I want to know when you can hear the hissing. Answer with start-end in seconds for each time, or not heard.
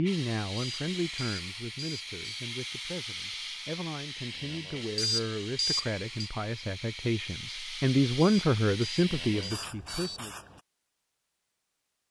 0.0-10.6.